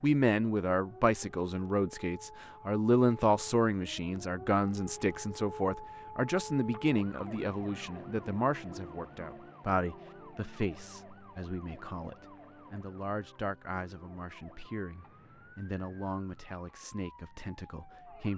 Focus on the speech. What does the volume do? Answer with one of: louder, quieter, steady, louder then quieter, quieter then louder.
quieter.